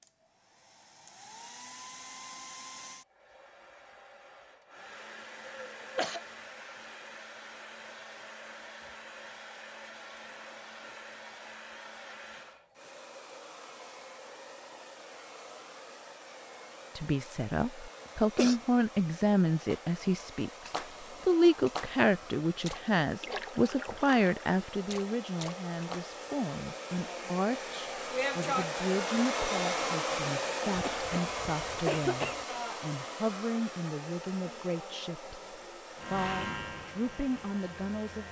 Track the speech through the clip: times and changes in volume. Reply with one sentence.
You can hear the speech from 16.9 to 38.2 s, getting quieter.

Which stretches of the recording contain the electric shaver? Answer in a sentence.
You can hear the electric shaver from 36.0 to 38.2 s.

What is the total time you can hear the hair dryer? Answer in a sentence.
You can hear the hair dryer for 38 seconds altogether.